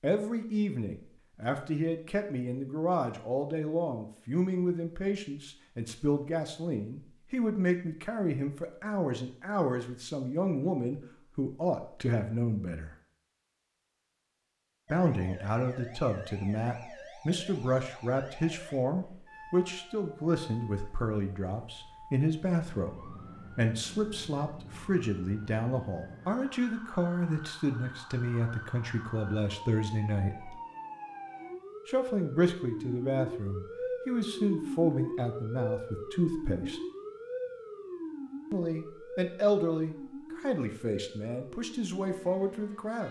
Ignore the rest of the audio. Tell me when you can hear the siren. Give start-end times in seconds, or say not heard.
14.8-43.0.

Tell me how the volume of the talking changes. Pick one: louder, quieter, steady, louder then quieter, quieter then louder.
steady.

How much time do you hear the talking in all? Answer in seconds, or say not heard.
38 s.